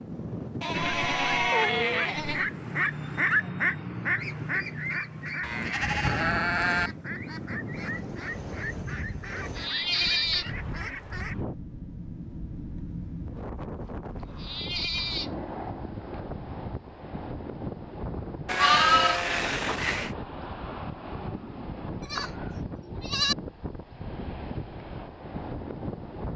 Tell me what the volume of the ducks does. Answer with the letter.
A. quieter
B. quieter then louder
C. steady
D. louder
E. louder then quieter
E.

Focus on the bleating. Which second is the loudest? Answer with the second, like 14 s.
19 s.